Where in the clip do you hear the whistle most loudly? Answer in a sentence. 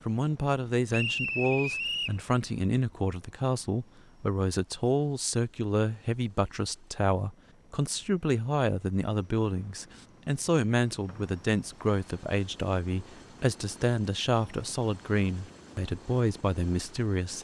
The loudest moment of the whistle is at 1 second.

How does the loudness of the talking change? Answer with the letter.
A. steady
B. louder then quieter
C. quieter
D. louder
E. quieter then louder
A.